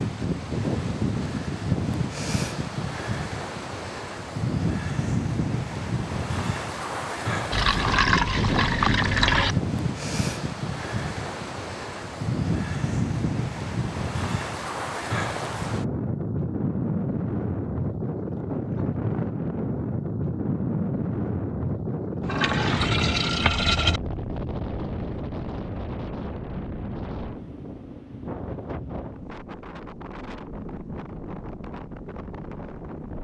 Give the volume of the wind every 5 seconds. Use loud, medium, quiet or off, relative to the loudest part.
loud, loud, loud, loud, loud, medium, medium.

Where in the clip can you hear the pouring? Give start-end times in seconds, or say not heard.
7.5-9.6, 22.2-24.0.